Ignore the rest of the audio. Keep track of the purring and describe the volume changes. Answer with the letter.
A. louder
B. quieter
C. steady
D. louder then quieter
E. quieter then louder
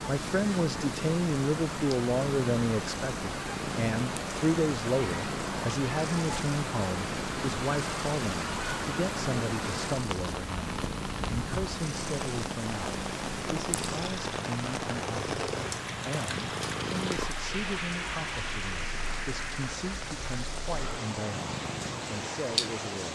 C.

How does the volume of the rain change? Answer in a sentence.
The loudness of the rain stays about the same.